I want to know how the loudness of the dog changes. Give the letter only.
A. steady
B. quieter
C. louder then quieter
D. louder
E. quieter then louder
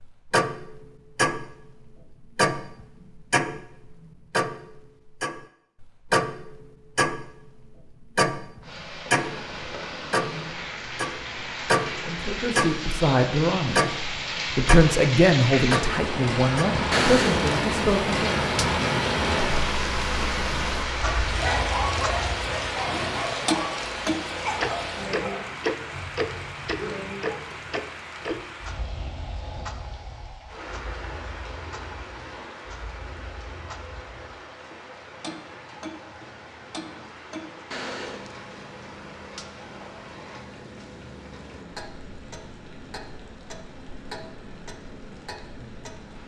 B.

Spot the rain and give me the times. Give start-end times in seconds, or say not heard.
8.6-46.2.